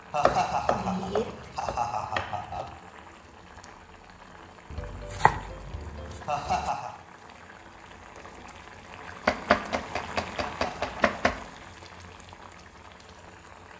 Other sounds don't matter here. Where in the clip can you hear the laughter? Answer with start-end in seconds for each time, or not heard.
0.1-2.7, 6.2-6.9, 10.4-11.2.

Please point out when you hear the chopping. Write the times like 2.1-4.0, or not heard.
0.2-2.6, 4.7-6.7, 9.2-11.4.